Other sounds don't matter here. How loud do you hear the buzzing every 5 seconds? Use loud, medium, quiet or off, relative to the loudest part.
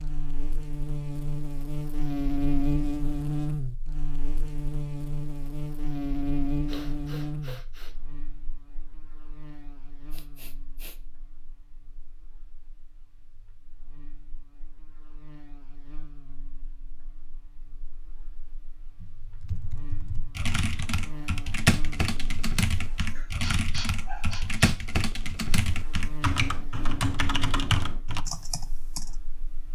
loud, loud, quiet, quiet, quiet, quiet.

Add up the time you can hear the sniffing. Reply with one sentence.
The sniffing can be heard for 4 seconds in total.